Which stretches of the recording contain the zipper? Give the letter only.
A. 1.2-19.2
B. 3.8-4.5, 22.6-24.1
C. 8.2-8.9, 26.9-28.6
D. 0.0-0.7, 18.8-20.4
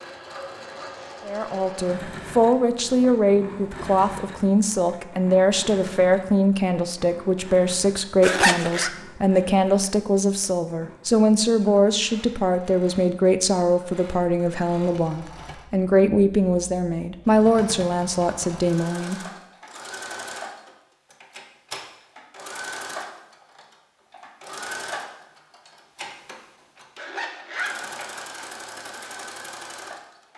C.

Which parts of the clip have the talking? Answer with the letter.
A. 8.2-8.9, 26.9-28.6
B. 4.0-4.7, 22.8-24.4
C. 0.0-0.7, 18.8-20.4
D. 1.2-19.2
D.